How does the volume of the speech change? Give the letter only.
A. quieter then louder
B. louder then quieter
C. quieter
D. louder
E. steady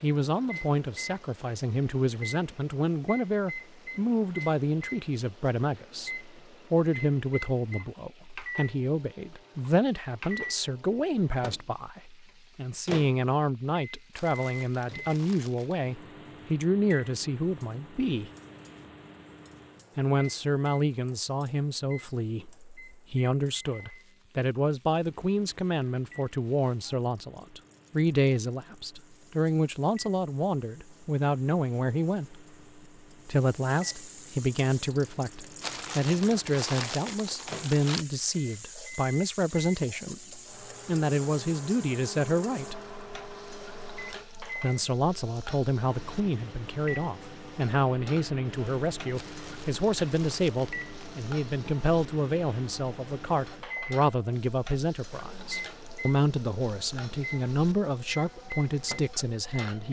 E.